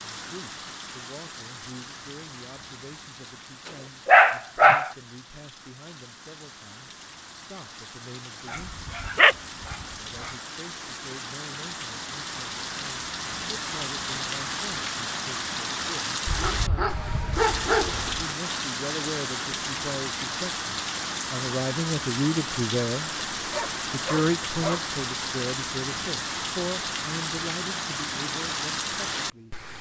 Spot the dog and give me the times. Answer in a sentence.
The dog can be heard from 4.0 to 4.9 s, from 8.5 to 10.3 s, from 16.2 to 18.2 s and from 23.3 to 24.9 s.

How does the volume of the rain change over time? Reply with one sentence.
The loudness of the rain goes up.